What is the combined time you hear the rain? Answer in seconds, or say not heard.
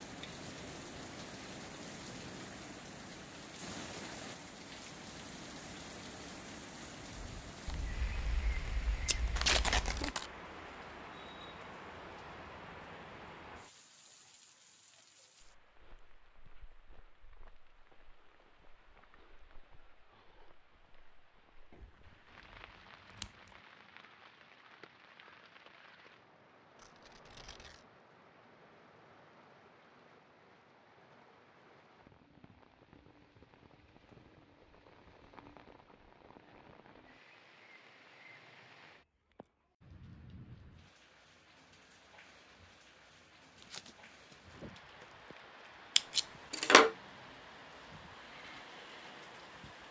50 s.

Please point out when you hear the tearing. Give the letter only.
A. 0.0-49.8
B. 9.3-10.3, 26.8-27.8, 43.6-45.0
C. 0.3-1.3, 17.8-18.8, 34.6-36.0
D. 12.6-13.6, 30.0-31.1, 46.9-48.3
B.